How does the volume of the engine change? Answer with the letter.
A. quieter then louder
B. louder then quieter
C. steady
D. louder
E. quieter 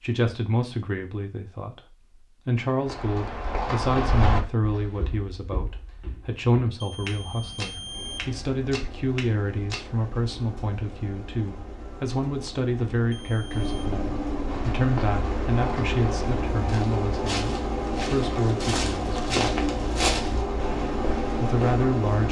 D.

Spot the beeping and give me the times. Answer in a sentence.
The beeping can be heard from 6.8 to 8.3 s and from 13.1 to 13.9 s.